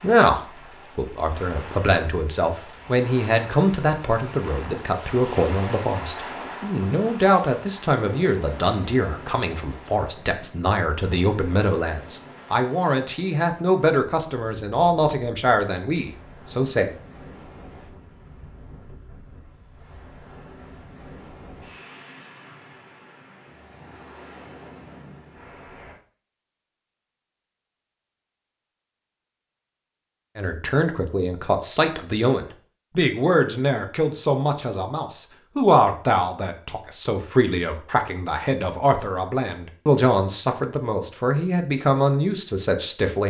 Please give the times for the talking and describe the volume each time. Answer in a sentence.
You can hear the talking from 0.0 to 16.9 s, at a steady volume; and from 30.4 to 43.2 s, at a steady volume.